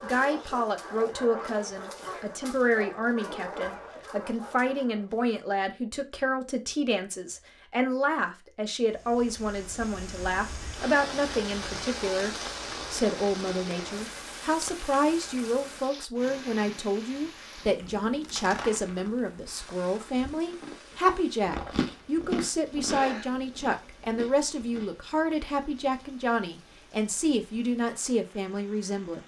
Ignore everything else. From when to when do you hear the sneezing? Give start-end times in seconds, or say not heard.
22.9-23.9.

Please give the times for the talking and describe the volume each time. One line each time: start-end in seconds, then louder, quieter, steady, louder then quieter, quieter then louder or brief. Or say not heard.
0.0-29.2 steady.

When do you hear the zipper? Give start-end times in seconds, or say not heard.
not heard.